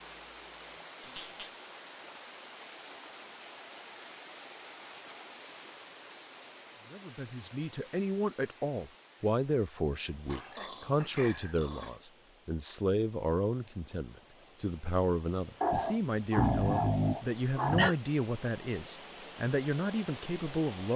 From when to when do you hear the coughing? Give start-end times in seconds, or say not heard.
17.4-17.9.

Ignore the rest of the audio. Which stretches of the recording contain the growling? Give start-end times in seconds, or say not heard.
1.0-1.6, 10.2-12.0, 15.6-17.9.